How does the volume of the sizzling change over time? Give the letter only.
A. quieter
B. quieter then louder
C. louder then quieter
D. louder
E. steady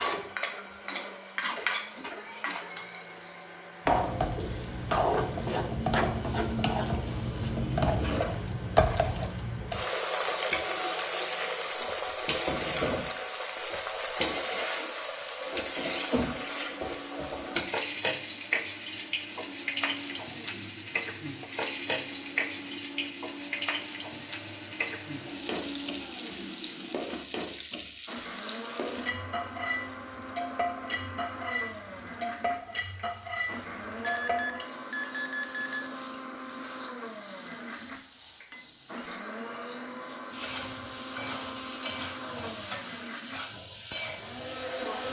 A.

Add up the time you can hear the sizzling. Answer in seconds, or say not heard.
45 s.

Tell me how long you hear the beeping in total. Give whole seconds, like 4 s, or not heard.
2 s.